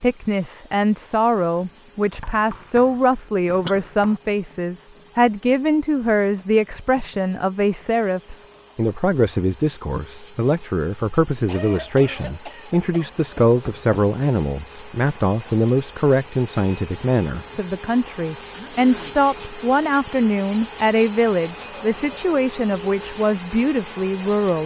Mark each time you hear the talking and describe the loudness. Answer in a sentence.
You can hear the talking from 0.0 to 24.6 s, at a steady volume.